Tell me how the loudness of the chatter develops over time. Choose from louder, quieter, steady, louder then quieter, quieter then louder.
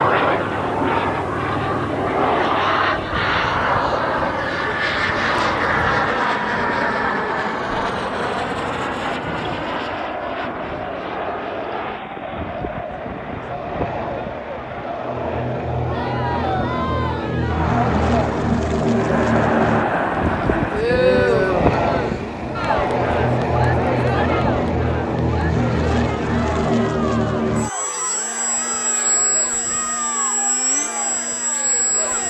louder then quieter.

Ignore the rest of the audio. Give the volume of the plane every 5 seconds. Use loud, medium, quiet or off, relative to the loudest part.
loud, loud, medium, loud, loud, loud, loud.